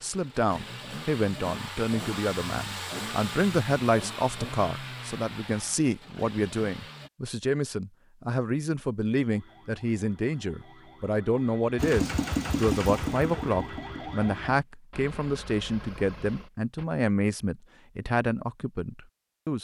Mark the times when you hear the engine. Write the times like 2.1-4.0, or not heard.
0.0-7.1, 11.8-16.9.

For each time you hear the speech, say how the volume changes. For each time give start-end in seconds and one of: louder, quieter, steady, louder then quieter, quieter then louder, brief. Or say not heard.
0.0-19.6 steady.